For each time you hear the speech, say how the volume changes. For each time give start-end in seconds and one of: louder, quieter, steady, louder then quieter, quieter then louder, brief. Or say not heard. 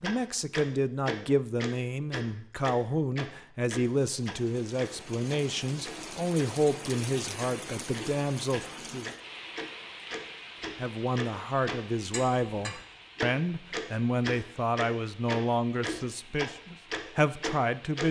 0.0-9.1 steady
10.8-18.0 steady.